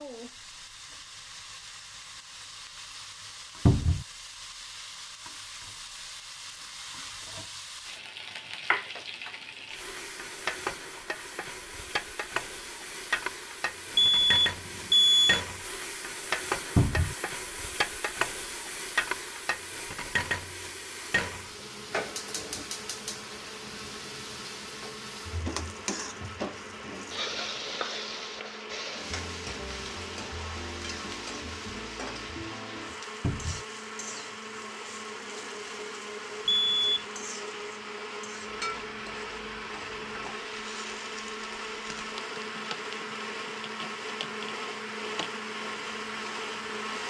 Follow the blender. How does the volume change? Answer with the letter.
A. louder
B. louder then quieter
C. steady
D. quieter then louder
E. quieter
A.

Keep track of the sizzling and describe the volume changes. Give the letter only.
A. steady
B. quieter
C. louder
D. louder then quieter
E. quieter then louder
D.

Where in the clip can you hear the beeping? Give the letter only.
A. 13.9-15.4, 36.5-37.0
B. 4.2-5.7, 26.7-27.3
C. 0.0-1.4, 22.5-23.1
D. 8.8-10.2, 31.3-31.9
A.